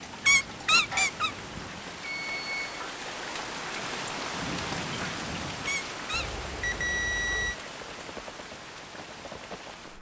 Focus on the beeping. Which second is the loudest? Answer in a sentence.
The loudest moment of the beeping is at 7 seconds.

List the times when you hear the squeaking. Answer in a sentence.
The squeaking can be heard from 0.2 to 1.6 s and from 5.7 to 6.3 s.